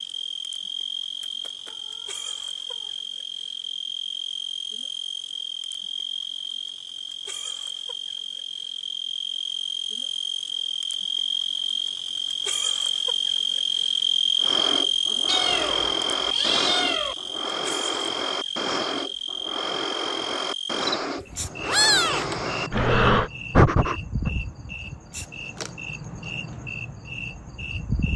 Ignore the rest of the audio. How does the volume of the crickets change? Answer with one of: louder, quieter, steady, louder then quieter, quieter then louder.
louder then quieter.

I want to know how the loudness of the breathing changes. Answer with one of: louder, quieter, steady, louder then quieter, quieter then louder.
louder.